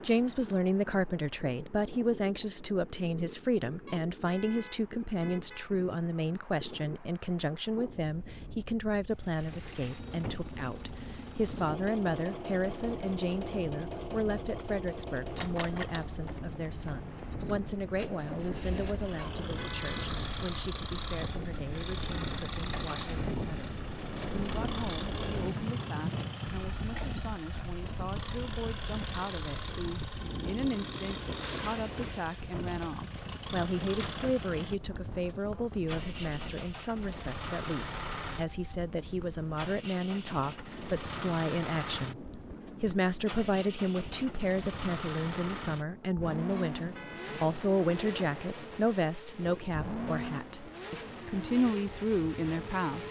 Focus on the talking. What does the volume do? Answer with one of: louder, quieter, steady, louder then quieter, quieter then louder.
quieter then louder.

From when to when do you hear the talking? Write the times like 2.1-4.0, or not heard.
0.0-53.0.